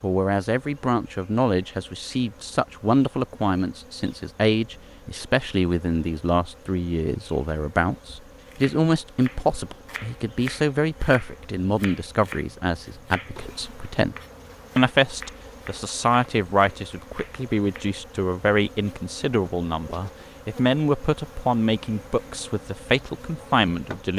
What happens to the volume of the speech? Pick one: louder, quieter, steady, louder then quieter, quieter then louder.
steady.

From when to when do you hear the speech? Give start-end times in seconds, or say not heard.
0.0-14.2, 14.8-24.1.